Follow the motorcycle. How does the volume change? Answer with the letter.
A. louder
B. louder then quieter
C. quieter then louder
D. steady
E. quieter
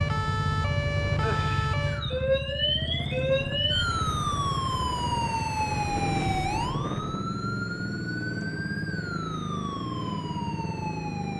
D.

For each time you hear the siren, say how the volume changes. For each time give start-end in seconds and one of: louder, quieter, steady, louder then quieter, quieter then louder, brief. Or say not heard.
0.0-11.3 quieter.